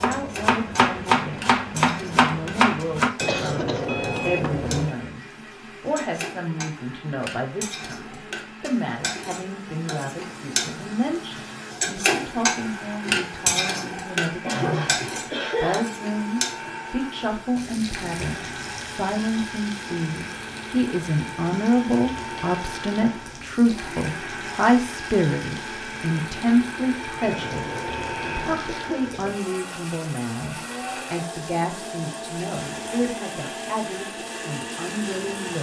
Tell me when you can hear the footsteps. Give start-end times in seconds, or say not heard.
not heard.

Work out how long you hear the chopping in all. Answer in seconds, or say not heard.
3 s.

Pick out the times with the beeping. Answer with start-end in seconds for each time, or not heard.
3.2-5.0, 27.2-28.6.